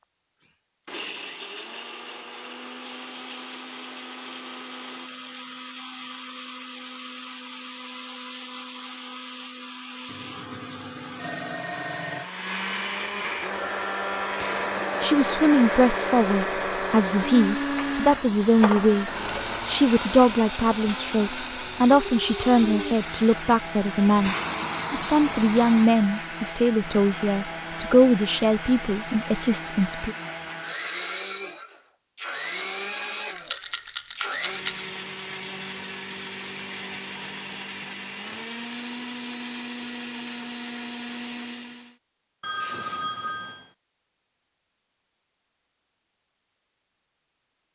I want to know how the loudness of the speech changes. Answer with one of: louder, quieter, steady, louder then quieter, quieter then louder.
steady.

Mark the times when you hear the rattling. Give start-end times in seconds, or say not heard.
33.4-34.9.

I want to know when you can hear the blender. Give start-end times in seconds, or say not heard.
0.5-42.0.